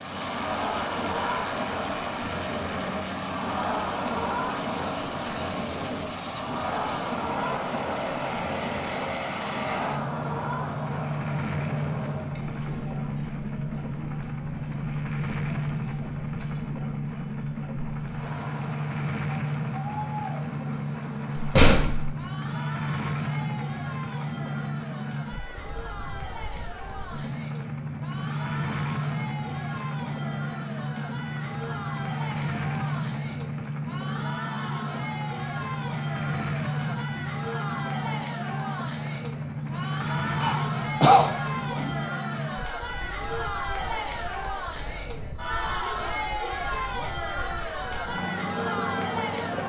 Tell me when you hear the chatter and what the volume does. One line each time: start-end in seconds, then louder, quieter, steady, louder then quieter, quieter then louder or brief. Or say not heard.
0.1-49.6 quieter then louder.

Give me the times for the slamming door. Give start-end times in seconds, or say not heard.
21.4-22.1.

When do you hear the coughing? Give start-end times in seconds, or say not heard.
40.4-42.0.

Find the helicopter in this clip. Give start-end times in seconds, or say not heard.
0.0-49.6.